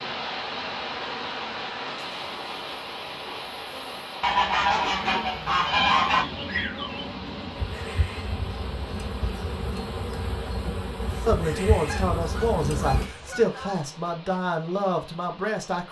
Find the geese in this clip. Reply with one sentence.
The geese can be heard from 4.2 to 6.2 s and from 11.8 to 13.8 s.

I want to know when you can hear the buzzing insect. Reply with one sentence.
You can hear the buzzing insect from 0.0 to 13.1 s.